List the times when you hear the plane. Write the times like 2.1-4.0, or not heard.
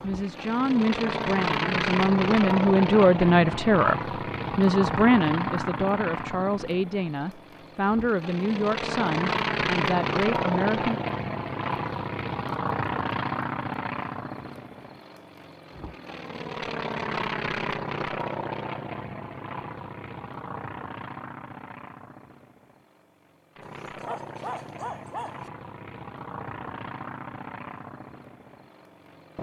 0.0-29.3.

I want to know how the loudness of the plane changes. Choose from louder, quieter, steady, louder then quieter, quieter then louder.
quieter.